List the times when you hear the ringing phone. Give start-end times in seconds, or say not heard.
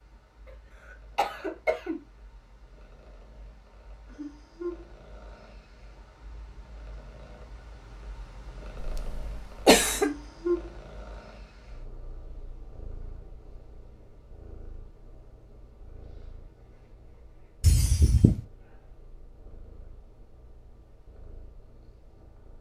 not heard.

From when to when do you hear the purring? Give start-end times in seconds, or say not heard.
0.0-22.5.